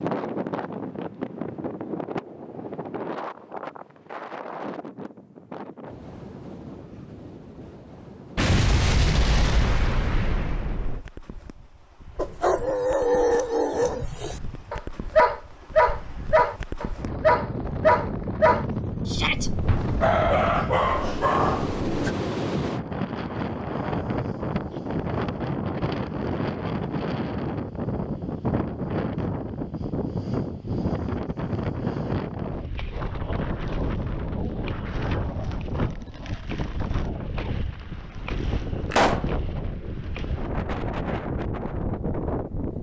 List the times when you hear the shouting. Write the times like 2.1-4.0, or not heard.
19.1-19.5.